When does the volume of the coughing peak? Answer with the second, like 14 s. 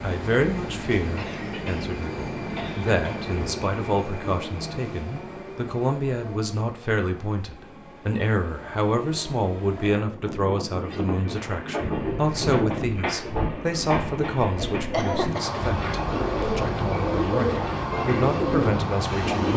15 s.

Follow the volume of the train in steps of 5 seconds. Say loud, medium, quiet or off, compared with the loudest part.
loud, medium, loud, loud.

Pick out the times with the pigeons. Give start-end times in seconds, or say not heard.
11.8-19.5.